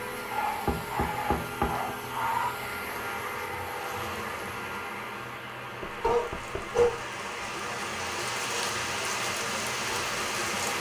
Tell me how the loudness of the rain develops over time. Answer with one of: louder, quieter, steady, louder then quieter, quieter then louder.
louder.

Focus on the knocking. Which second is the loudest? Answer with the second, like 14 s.
1 s.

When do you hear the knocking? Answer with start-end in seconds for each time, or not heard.
0.7-1.9, 5.8-6.8.